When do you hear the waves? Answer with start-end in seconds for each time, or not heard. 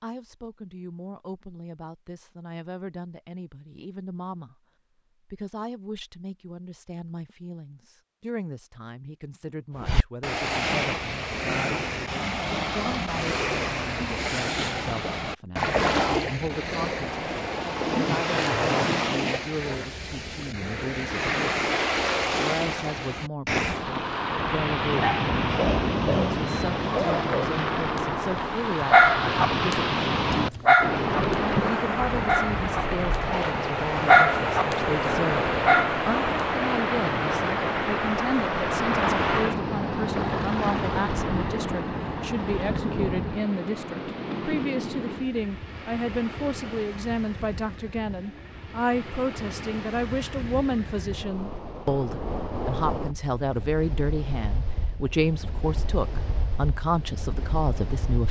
9.8-58.2.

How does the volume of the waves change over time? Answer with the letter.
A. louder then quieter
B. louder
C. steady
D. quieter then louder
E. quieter
E.